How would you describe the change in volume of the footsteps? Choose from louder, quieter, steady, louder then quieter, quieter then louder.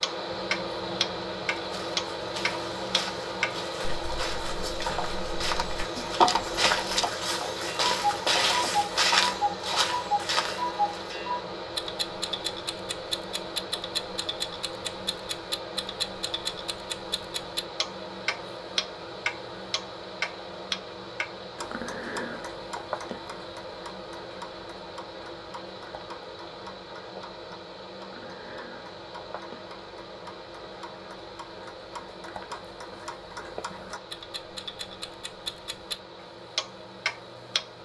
louder.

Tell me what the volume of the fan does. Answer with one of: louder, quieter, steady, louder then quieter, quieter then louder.
quieter.